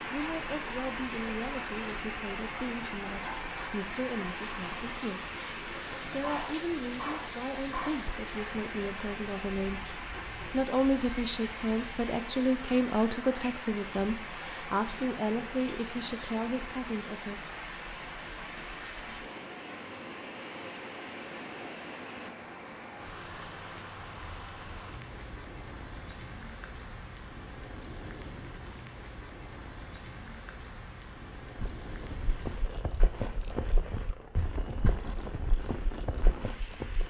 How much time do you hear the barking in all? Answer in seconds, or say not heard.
2 s.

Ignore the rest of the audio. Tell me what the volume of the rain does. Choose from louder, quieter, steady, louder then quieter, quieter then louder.
quieter.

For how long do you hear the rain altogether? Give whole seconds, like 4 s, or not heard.
37 s.